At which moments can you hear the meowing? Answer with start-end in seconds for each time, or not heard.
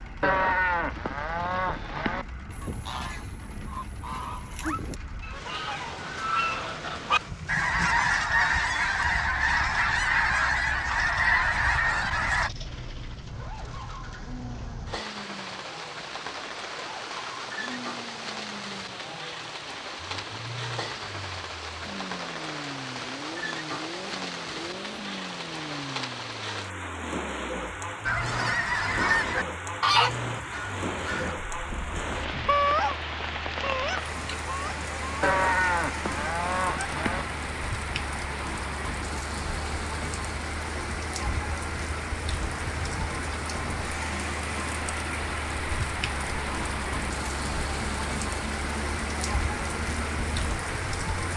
not heard.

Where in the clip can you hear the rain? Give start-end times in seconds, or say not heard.
0.0-51.3.